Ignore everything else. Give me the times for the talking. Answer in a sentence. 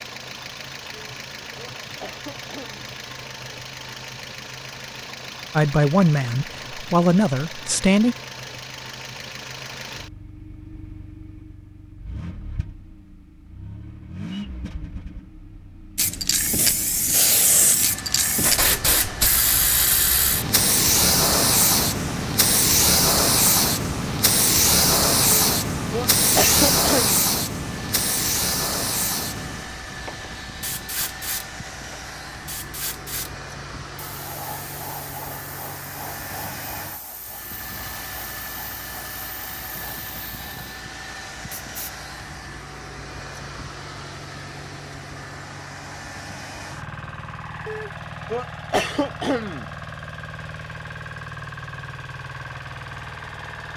The talking can be heard from 5.5 to 8.2 s.